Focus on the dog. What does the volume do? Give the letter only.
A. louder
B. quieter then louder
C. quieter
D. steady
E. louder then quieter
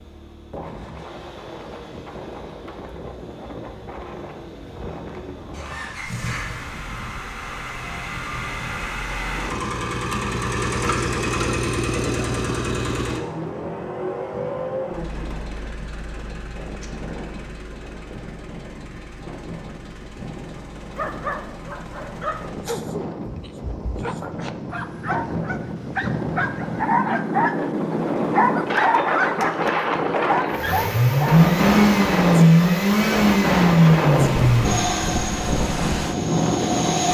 A.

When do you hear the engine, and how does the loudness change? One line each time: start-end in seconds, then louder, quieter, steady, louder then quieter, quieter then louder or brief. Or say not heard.
0.0-22.8 louder then quieter
30.5-37.0 quieter.